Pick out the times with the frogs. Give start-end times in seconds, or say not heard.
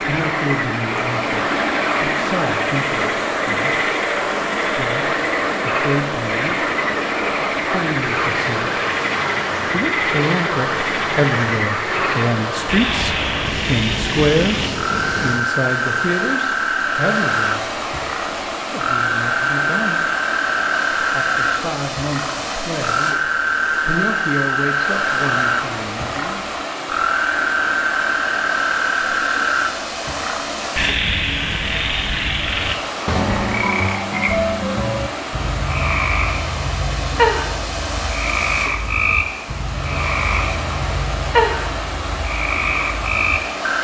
0.0-43.8.